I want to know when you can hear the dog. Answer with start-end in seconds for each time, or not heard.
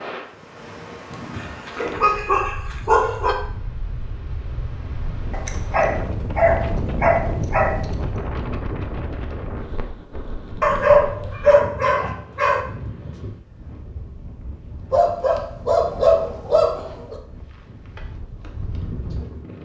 1.4-3.4, 5.3-7.8, 10.6-12.6, 14.9-17.1.